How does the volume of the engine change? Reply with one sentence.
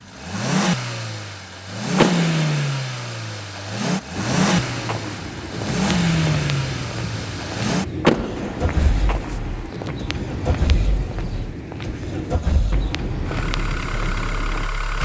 The volume of the engine goes down.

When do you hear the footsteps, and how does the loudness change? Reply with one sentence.
The footsteps can be heard from 4.2 to 14.7 s, at a steady volume.